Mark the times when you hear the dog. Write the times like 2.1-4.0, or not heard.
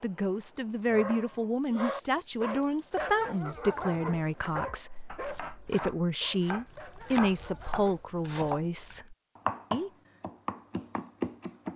0.9-8.6.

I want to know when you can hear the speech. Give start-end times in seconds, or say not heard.
0.0-9.9.